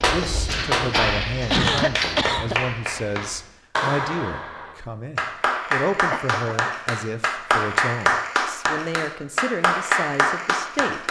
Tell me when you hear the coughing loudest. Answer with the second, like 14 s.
2 s.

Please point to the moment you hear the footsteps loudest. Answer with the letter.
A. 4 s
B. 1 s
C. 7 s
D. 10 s
B.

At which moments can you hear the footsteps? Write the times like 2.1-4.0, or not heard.
0.0-3.5.